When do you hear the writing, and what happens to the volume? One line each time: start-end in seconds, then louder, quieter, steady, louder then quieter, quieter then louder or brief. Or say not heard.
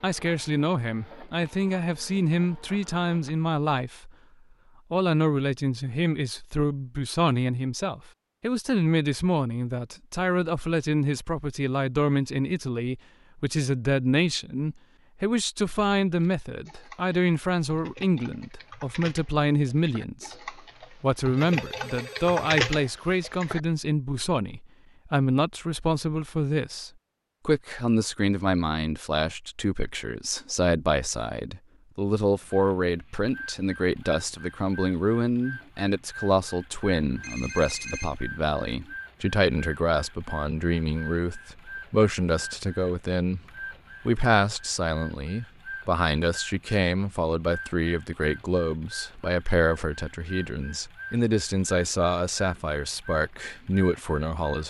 not heard.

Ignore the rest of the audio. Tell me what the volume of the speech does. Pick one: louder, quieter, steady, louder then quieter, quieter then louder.
steady.